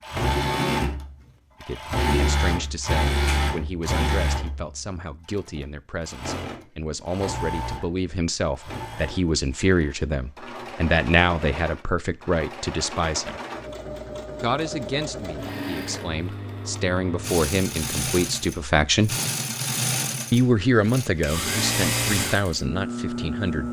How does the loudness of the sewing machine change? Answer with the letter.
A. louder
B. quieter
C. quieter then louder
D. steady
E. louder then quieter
C.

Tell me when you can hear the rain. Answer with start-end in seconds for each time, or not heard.
not heard.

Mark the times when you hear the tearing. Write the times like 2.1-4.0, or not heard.
not heard.